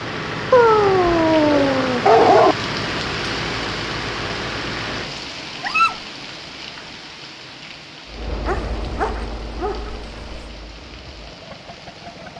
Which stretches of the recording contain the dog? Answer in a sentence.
The dog can be heard from 0.5 to 2.5 s, from 5.6 to 6.0 s and from 8.4 to 10.4 s.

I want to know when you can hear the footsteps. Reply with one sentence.
The footsteps can't be heard in this clip.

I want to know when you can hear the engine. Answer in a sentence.
The engine can be heard from 0.0 to 5.2 s and from 8.1 to 12.3 s.